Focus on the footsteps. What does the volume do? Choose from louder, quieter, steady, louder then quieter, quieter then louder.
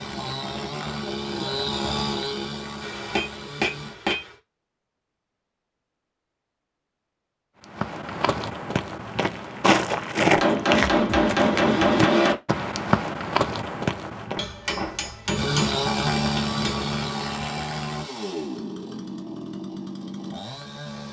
louder then quieter.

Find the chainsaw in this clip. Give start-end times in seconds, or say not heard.
0.0-4.0, 15.3-21.0.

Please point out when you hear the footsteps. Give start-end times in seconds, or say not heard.
7.7-15.3.